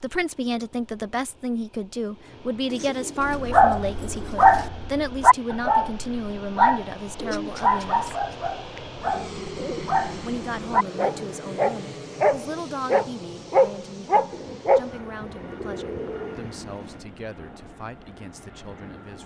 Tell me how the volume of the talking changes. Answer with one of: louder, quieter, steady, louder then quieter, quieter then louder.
quieter.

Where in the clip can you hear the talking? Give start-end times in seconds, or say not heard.
0.0-8.2, 10.2-19.2.